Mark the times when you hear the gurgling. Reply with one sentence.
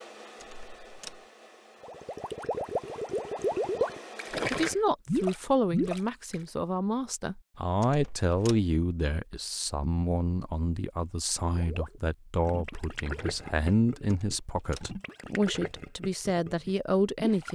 You can hear the gurgling from 1.8 to 6.3 s and from 11.6 to 17.5 s.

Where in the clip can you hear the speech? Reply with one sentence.
You can hear the speech from 4.5 to 17.5 s.